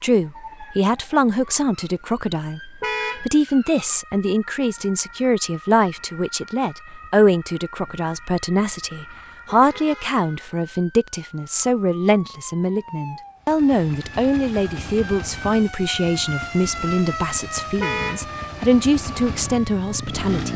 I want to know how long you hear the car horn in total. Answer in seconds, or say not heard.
2 s.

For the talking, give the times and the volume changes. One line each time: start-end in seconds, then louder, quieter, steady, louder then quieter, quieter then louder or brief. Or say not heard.
0.0-20.5 steady.